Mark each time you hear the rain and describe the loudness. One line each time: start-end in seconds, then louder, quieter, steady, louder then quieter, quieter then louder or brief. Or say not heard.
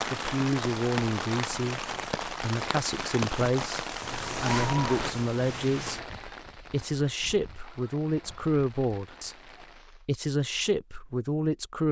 0.0-10.1 quieter.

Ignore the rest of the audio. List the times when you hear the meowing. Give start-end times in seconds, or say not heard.
4.0-6.0.